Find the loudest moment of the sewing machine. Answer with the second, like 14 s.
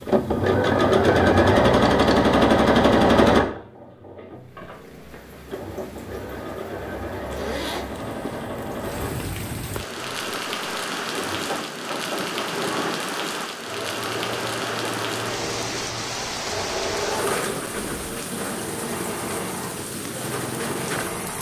3 s.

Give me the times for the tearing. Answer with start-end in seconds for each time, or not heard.
not heard.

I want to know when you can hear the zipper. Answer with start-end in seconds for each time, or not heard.
7.3-8.4.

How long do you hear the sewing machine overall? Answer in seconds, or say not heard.
21 s.